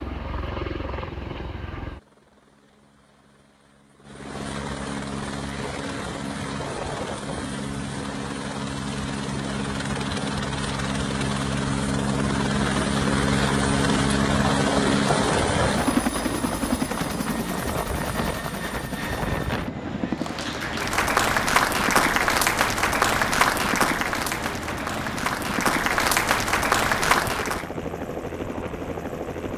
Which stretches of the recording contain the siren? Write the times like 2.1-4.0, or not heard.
not heard.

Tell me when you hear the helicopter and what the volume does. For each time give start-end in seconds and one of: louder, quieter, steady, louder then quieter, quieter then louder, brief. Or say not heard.
0.0-29.5 louder then quieter.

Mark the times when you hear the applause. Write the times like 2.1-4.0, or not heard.
20.2-27.7.